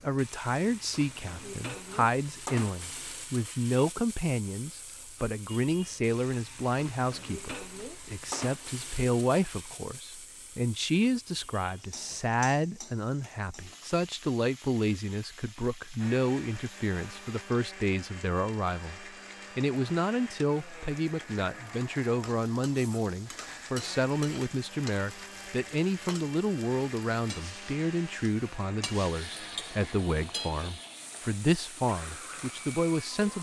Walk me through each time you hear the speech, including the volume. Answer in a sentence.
You can hear the speech from 0.0 to 33.3 s, at a steady volume.